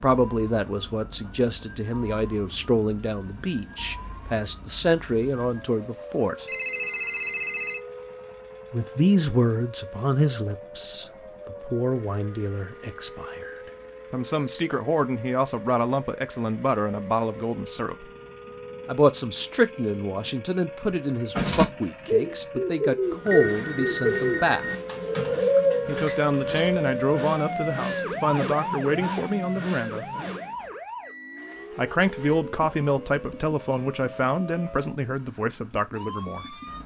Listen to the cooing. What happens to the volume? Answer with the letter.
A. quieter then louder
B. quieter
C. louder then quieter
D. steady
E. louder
A.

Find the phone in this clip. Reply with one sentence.
The phone can be heard from 6.5 to 7.8 s and from 23.2 to 24.8 s.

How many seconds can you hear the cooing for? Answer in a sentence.
The cooing can be heard for 5 seconds in total.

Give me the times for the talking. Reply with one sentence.
The talking can be heard from 0.0 to 6.5 s, from 8.7 to 18.1 s, from 18.9 to 24.6 s, from 25.9 to 30.1 s and from 31.8 to 36.5 s.